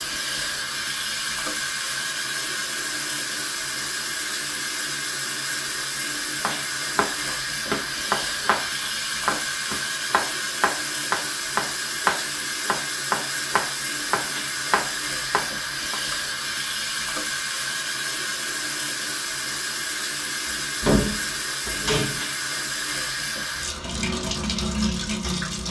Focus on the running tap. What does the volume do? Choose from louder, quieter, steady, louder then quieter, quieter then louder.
steady.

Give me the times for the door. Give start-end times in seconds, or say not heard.
20.4-22.2.